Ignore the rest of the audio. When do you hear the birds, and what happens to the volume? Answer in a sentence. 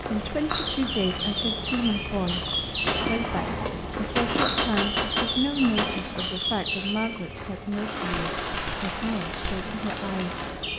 You can hear the birds from 0.0 to 10.7 s, at a steady volume.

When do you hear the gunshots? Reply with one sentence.
You can hear the gunshots from 2.9 to 6.2 s.